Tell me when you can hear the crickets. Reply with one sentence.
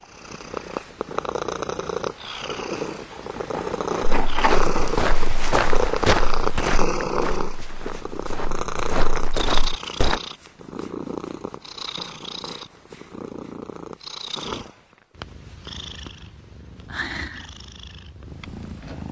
The crickets can't be heard in this clip.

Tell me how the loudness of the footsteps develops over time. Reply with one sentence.
The volume of the footsteps goes down, then up.